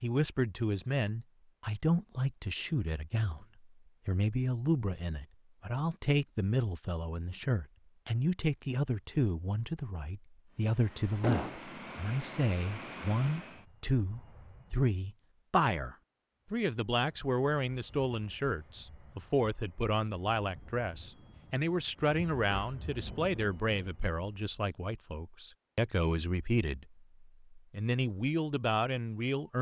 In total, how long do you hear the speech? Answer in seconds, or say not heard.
29 s.